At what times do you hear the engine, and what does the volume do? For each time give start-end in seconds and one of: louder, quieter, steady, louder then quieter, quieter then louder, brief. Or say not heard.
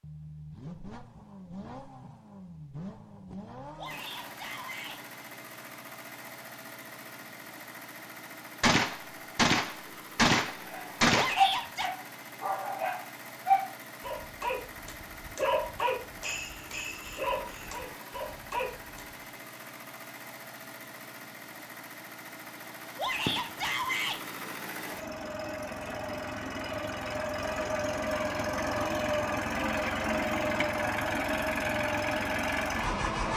0.0-33.3 louder.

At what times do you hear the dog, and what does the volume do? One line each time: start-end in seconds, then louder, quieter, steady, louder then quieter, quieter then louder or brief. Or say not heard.
10.7-19.1 quieter.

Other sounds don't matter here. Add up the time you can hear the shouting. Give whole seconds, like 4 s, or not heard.
3 s.